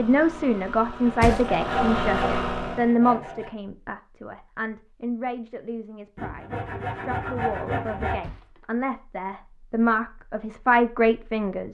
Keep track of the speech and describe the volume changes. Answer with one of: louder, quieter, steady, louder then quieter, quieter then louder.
quieter then louder.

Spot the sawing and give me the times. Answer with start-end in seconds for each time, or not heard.
1.1-3.5, 6.2-8.2.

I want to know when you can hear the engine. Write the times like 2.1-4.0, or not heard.
0.0-3.0.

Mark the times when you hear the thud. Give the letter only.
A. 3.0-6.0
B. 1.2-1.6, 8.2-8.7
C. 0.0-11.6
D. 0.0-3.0
B.